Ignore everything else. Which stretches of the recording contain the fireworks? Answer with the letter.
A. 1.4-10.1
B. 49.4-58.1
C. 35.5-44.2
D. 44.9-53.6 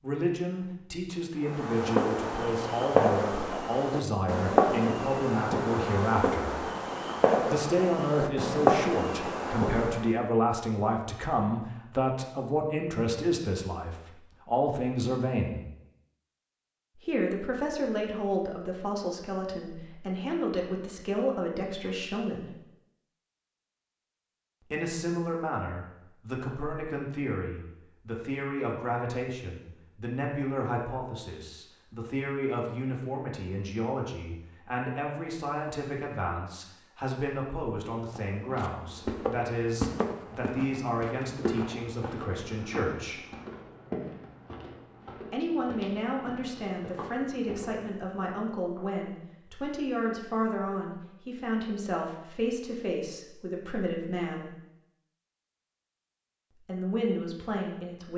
A.